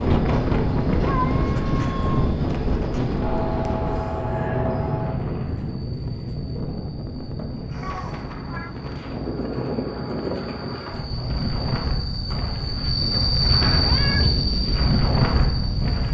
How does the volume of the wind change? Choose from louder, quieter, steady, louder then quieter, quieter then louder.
quieter then louder.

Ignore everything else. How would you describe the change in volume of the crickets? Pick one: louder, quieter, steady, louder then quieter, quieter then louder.
quieter then louder.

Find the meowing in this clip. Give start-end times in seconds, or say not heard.
1.1-2.4, 7.8-8.7, 13.7-14.6.